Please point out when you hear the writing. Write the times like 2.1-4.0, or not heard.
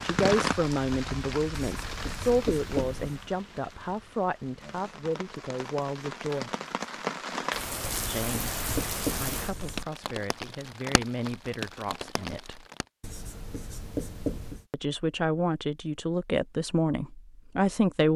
1.6-3.2, 7.8-9.8, 13.0-14.7.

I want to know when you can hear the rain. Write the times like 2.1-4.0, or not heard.
0.0-12.8.